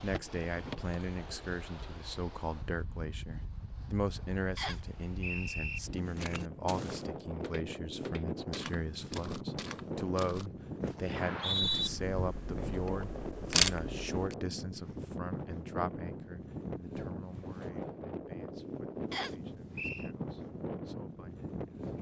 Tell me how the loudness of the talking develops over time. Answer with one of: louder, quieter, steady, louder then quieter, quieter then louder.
quieter.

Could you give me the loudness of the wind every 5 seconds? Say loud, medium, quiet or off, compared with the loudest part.
medium, loud, loud, loud, loud.